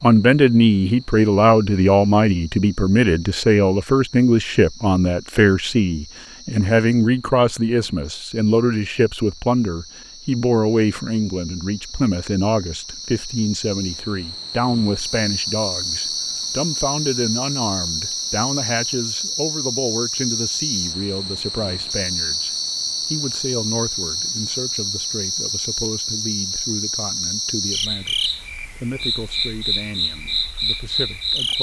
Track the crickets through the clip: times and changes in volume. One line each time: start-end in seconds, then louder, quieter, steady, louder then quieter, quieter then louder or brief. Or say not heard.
0.0-31.5 louder.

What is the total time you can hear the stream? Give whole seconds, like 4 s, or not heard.
not heard.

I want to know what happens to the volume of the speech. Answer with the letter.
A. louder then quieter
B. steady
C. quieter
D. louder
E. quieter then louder
C.